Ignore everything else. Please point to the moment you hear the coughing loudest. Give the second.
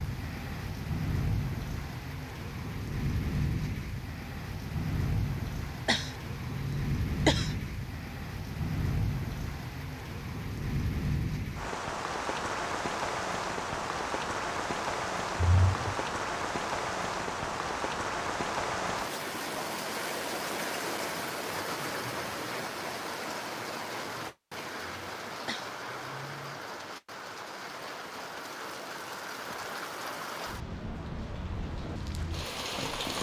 7 s.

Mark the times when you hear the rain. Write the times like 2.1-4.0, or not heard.
0.0-33.1.